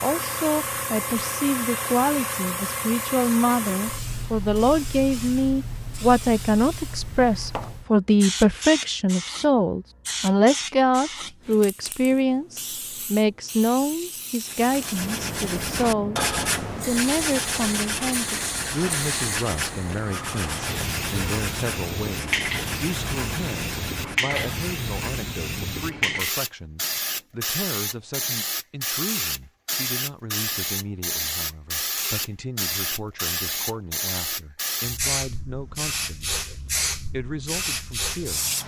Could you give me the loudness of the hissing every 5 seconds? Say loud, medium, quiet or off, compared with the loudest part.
loud, medium, medium, medium, loud, loud, loud, loud.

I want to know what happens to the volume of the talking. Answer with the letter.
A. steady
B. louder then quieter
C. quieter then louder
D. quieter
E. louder
D.